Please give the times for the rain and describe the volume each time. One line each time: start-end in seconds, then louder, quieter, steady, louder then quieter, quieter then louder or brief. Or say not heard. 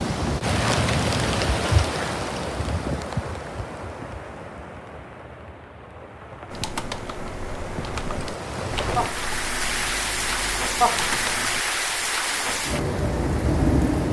0.0-14.0 quieter then louder.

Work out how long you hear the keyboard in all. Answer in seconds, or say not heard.
5 s.